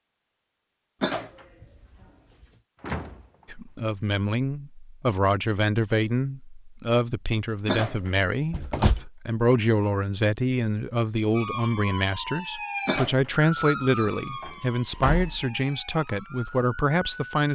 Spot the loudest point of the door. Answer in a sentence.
The volume of the door peaks at 9 seconds.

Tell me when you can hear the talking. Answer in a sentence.
You can hear the talking from 3.5 to 17.5 s.